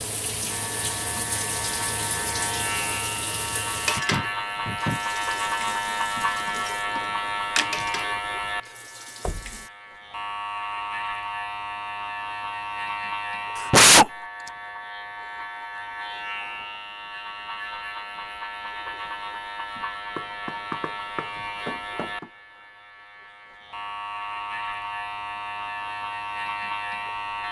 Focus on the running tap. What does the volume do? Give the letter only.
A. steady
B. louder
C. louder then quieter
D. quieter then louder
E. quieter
D.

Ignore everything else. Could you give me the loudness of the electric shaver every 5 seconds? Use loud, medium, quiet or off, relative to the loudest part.
loud, loud, loud, medium, medium, loud.